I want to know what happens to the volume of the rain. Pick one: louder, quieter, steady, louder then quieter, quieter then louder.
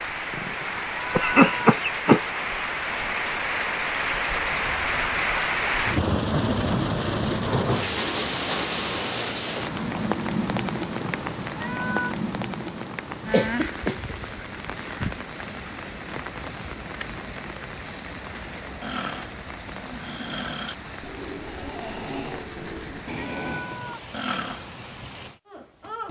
quieter.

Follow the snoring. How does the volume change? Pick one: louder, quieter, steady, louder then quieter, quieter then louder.
louder.